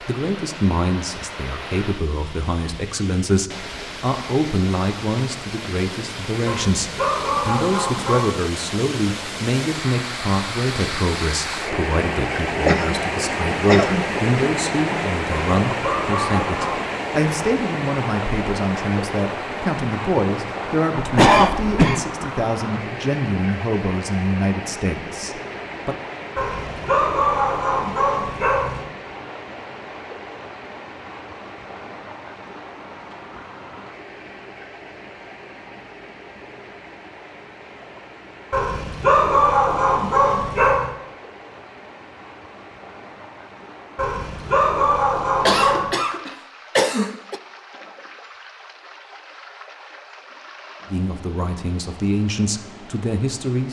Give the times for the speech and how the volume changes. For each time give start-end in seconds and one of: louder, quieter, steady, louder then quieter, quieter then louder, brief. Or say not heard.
0.0-25.9 steady
50.9-53.6 brief.